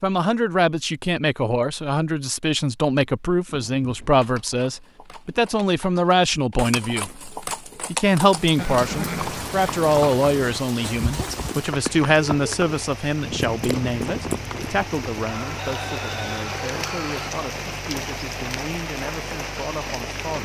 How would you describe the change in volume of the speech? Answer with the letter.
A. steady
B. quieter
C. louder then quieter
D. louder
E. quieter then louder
B.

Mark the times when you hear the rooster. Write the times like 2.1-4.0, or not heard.
15.2-17.3.